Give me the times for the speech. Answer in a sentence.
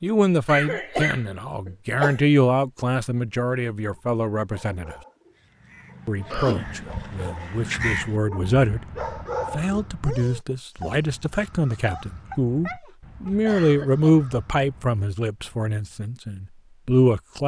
The speech can be heard from 0.0 to 5.0 s, from 6.0 to 8.8 s and from 9.5 to 17.4 s.